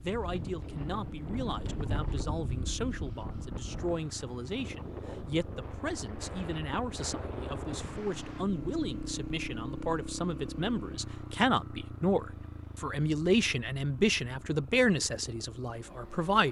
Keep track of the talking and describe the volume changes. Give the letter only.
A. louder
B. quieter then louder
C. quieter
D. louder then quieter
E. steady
A.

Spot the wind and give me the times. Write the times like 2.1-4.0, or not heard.
0.0-8.4.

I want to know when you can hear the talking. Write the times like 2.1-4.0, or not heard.
0.0-16.4.